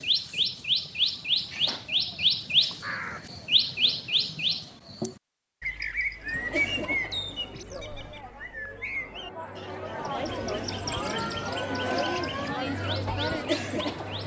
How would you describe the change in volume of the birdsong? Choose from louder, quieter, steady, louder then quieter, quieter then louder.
quieter.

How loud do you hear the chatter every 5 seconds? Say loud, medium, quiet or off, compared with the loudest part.
off, medium, loud.